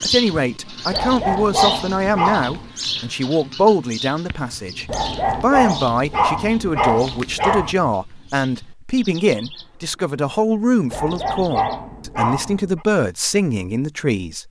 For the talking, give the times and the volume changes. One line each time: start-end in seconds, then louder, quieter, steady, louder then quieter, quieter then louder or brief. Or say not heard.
0.0-14.4 steady.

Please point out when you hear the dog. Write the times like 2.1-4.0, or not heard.
0.9-2.7, 4.8-7.8, 10.9-12.8.